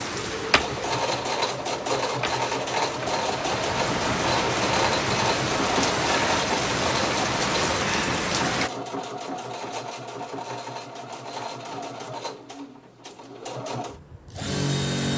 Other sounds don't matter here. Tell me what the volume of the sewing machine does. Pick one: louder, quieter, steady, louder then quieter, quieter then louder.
quieter.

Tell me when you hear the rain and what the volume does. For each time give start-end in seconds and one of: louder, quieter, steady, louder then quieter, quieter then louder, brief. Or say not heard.
0.0-8.7 louder.